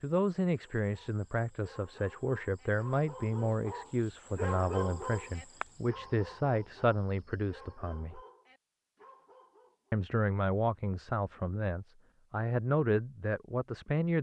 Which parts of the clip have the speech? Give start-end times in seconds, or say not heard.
0.0-8.2, 9.9-14.1.